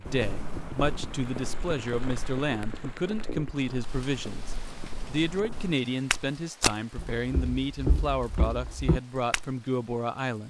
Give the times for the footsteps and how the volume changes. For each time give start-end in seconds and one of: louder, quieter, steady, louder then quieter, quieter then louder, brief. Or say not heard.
0.0-9.5 quieter then louder.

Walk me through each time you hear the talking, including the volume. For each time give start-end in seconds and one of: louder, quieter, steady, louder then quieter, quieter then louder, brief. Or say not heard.
0.0-10.4 steady.